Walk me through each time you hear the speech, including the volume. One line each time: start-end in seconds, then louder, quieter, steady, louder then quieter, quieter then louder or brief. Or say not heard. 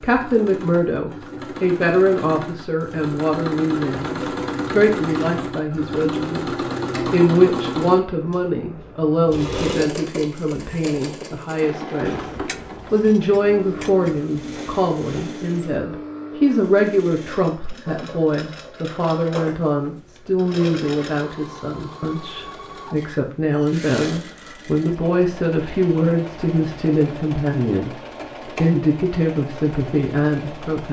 0.0-30.8 steady.